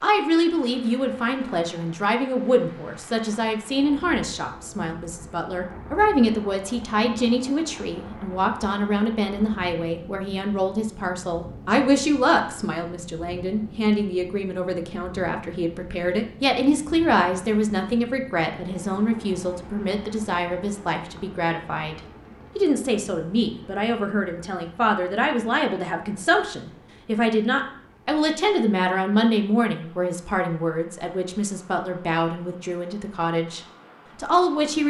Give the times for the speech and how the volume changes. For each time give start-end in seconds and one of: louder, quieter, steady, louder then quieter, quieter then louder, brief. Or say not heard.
0.0-34.8 steady.